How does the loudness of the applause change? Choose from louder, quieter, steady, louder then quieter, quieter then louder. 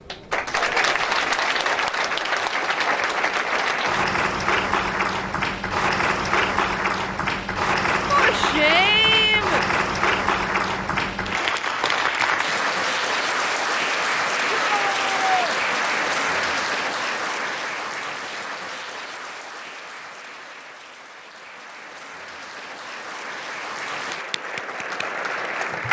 quieter.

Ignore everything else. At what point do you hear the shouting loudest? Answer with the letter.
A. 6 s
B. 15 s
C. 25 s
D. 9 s
D.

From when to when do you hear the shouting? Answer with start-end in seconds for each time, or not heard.
8.1-9.7, 14.5-15.6.